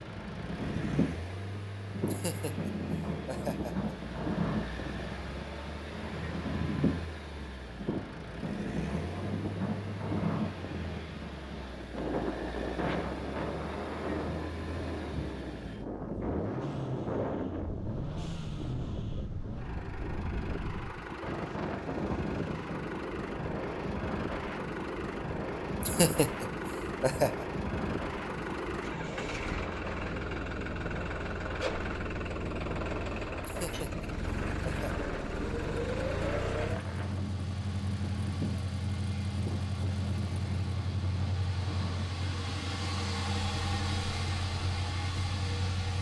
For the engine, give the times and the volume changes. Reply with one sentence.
You can hear the engine from 0.0 to 45.9 s, getting louder.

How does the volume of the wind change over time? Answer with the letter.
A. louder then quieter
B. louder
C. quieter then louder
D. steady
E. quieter
E.